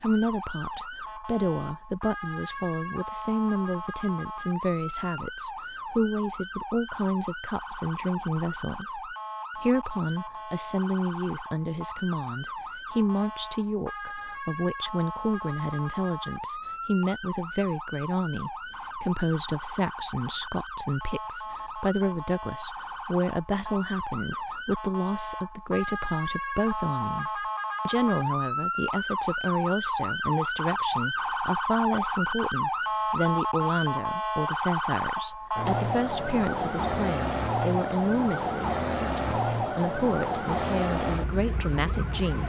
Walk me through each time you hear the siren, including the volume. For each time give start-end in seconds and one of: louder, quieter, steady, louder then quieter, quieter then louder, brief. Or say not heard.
0.0-42.4 louder.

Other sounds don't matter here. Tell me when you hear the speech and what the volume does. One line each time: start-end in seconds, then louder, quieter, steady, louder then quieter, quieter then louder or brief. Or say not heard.
0.0-42.4 steady.